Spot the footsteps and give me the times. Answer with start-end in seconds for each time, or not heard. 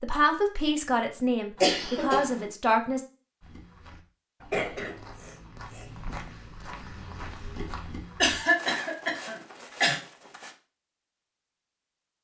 3.4-10.6.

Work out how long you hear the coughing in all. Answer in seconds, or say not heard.
4 s.